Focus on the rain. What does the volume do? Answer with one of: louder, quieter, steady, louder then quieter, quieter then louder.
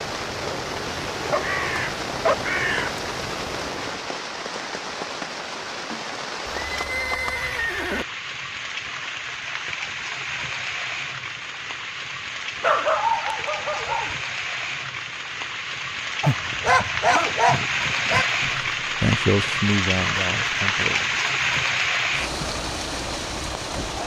louder.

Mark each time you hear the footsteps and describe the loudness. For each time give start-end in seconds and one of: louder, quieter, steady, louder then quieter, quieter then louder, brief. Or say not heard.
not heard.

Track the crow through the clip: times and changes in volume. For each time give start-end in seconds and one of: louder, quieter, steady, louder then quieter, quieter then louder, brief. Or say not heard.
0.0-4.1 louder then quieter.